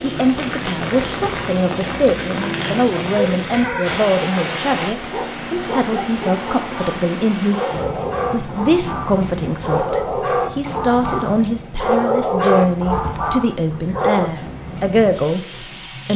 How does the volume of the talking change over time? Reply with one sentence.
The loudness of the talking stays about the same.